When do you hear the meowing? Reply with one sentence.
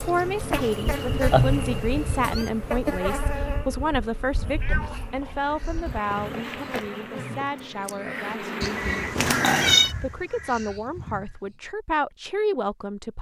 The meowing can be heard from 1.3 to 2.5 s, from 4.6 to 5.0 s and from 9.2 to 9.9 s.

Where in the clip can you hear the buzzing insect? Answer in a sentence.
The buzzing insect can be heard from 0.0 to 9.3 s.